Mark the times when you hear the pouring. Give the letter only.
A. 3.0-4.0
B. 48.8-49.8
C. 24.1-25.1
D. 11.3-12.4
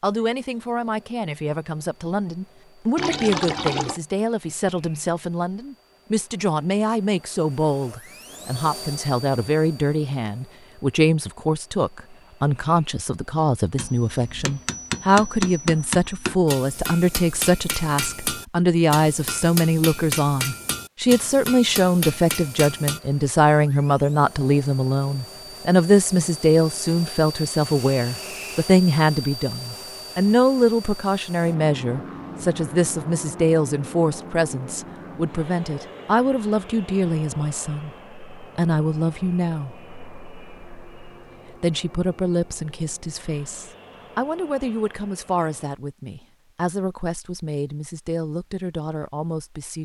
A.